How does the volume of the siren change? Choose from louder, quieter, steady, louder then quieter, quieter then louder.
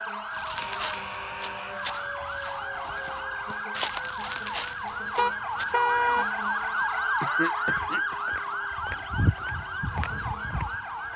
louder then quieter.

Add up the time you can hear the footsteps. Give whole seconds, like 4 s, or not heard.
11 s.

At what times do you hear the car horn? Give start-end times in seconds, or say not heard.
5.2-6.2.